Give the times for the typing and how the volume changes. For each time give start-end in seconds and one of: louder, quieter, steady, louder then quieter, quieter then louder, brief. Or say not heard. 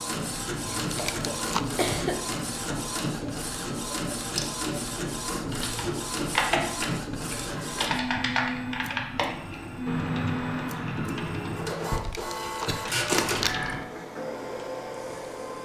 5.5-13.8 quieter.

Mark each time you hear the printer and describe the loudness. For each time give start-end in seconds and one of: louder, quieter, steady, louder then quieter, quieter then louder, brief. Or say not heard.
0.0-15.6 steady.